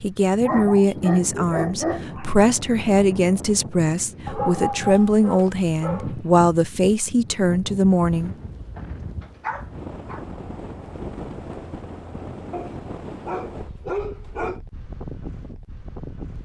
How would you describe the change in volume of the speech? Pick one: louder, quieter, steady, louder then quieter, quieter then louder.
steady.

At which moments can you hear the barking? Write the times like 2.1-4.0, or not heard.
0.5-2.3, 4.2-6.3, 8.8-10.2, 12.5-14.6.